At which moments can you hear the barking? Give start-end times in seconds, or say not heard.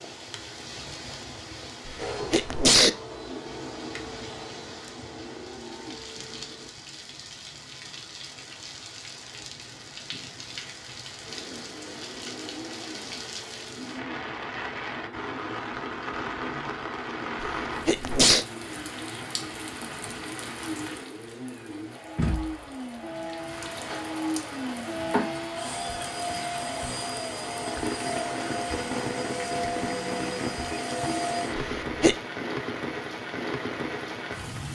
not heard.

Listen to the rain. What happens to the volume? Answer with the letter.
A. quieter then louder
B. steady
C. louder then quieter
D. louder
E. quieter
D.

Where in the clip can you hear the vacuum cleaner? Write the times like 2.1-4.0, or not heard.
1.9-6.7, 11.2-31.6.